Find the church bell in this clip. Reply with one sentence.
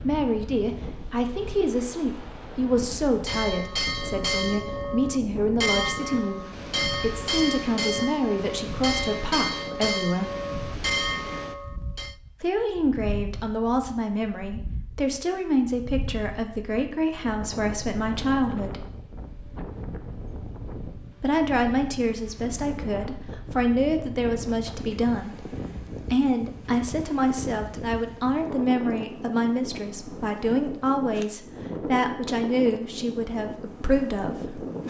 You can hear the church bell from 3.0 to 12.2 s.